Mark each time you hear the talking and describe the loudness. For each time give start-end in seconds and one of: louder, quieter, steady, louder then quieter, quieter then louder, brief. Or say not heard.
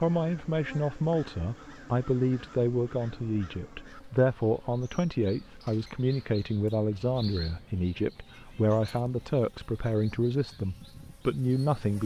0.0-12.0 steady.